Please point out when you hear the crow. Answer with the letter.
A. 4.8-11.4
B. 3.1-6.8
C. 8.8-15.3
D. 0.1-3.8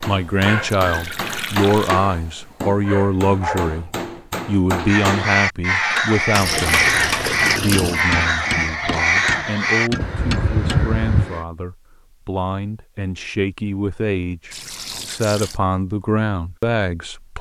A.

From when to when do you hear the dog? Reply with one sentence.
The dog can be heard from 0.1 to 3.8 s.